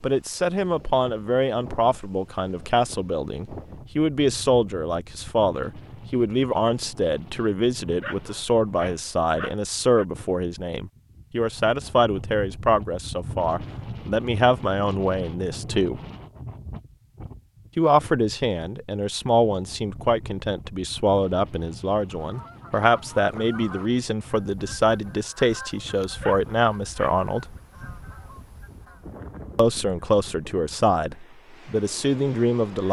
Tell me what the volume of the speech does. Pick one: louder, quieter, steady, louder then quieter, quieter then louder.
steady.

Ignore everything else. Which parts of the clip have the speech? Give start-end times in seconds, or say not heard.
0.0-16.0, 17.8-27.6, 29.6-32.8.